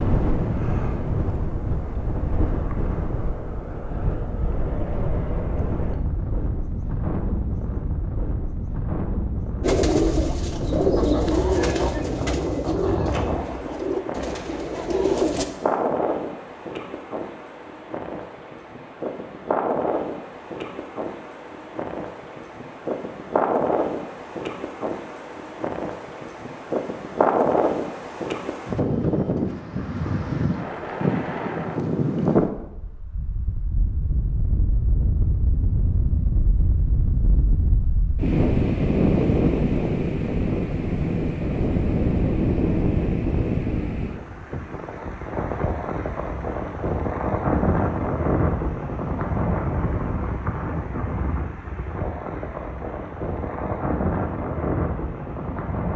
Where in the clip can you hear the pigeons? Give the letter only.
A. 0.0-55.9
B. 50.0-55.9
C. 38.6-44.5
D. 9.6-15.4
D.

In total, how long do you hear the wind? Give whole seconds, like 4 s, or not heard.
56 s.